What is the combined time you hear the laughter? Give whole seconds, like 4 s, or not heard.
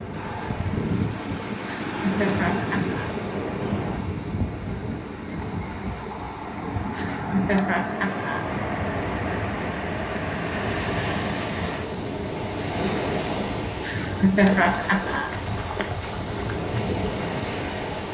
5 s.